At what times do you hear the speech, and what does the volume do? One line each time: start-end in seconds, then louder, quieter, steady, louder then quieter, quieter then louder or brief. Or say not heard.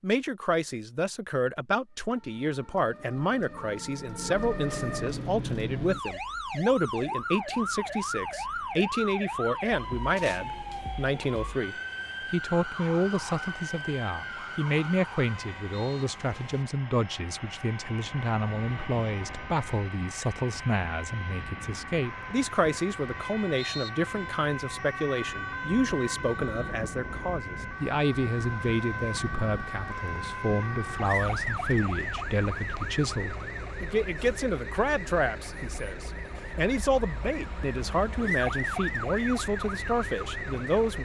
0.0-41.0 steady.